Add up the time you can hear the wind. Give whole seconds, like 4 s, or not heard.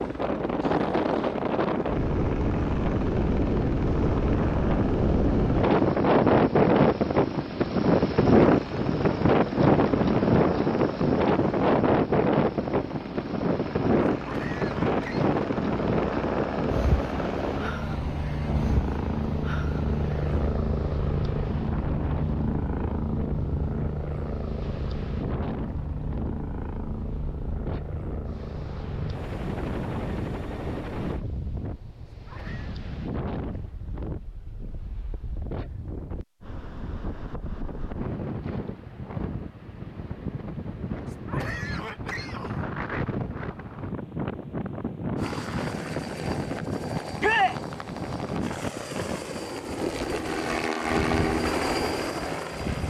53 s.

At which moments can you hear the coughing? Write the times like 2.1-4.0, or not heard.
14.2-15.3, 32.1-32.8, 41.0-42.6.